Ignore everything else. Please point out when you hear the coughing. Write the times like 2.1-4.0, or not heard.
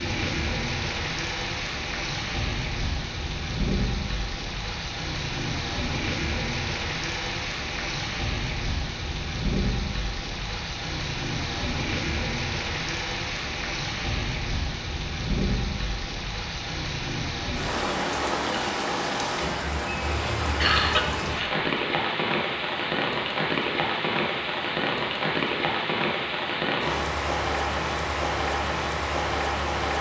20.6-21.6.